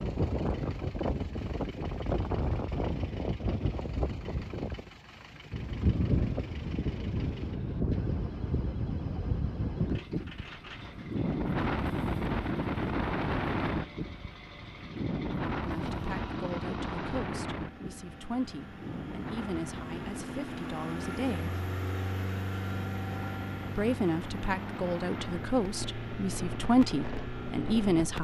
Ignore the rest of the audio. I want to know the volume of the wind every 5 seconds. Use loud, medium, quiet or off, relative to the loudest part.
loud, loud, loud, loud, medium, medium.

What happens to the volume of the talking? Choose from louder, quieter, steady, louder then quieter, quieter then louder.
louder.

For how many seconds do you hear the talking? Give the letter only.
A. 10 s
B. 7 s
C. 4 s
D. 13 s
A.